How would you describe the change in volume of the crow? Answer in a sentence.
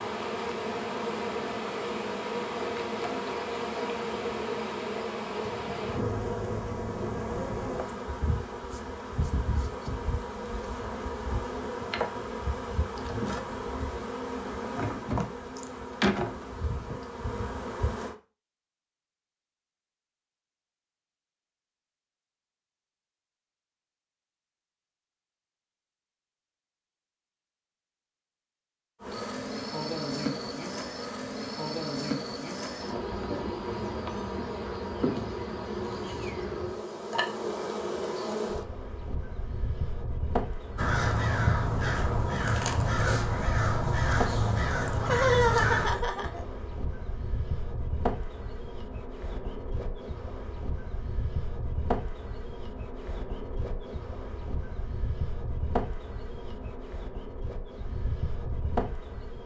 The loudness of the crow stays about the same.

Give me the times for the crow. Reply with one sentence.
You can hear the crow from 40.8 to 45.9 s.